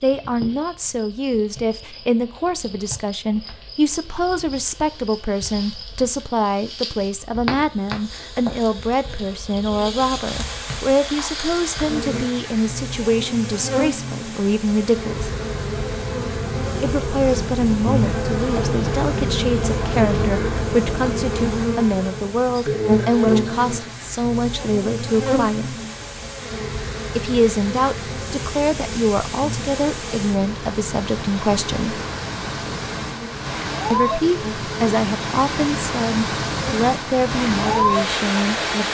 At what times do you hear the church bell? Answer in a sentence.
You can't hear the church bell here.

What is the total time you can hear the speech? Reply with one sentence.
The speech can be heard for 34 seconds in total.